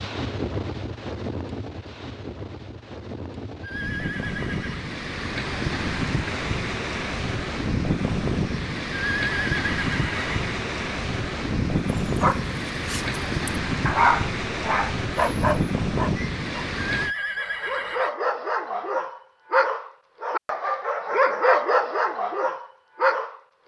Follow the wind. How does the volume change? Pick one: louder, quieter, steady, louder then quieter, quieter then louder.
louder.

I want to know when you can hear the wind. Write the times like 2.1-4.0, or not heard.
0.0-17.1.